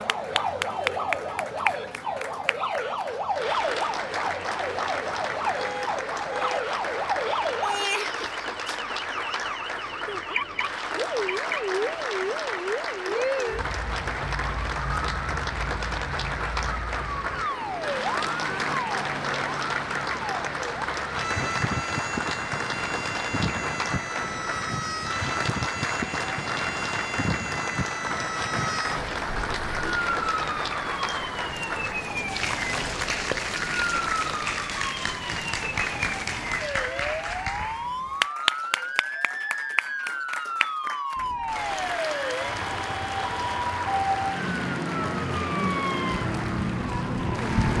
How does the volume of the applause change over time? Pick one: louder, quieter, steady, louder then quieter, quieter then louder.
steady.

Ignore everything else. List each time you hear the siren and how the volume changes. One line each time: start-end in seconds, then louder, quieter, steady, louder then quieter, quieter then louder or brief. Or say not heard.
0.0-47.7 steady.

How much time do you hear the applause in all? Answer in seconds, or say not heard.
48 s.